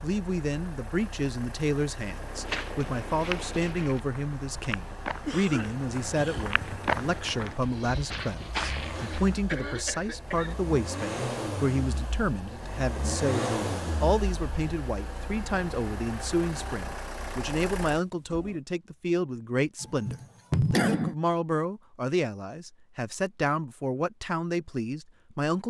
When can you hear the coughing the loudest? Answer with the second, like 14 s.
21 s.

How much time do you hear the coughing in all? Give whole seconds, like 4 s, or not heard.
4 s.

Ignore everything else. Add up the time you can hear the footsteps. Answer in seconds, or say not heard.
7 s.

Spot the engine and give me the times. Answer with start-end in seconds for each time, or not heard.
0.0-18.6.